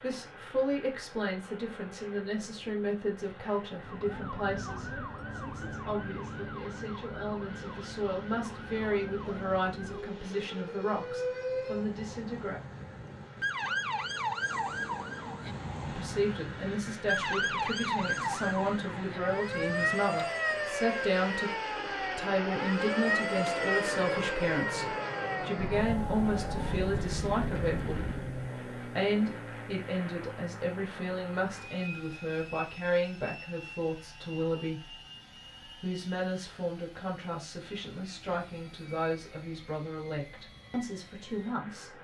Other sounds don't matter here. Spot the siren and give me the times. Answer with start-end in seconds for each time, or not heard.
3.8-28.4.